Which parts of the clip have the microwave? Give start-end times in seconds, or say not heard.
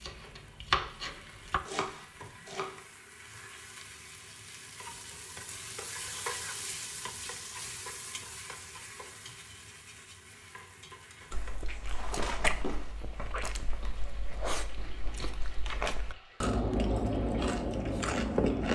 not heard.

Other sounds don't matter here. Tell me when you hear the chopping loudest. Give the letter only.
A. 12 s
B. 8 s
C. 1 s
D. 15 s
C.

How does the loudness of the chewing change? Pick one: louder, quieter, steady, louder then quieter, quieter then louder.
quieter then louder.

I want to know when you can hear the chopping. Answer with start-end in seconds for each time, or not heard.
0.0-2.9.